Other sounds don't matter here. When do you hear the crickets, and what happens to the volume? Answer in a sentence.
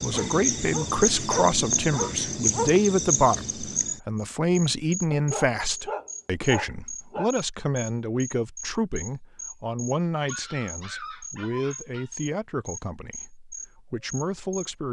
The crickets can be heard from 0.0 to 14.7 s, getting quieter.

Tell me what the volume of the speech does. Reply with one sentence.
The volume of the speech goes down.